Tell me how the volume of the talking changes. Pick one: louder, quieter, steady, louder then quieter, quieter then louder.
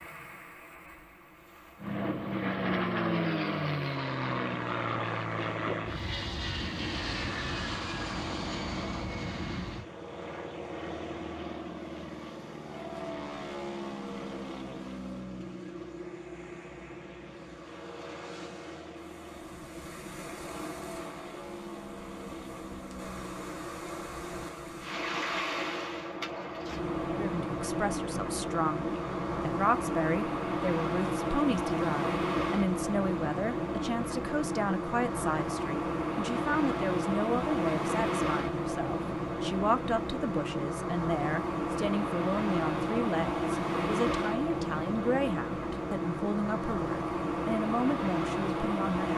steady.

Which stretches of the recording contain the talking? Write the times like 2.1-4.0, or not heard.
27.1-49.1.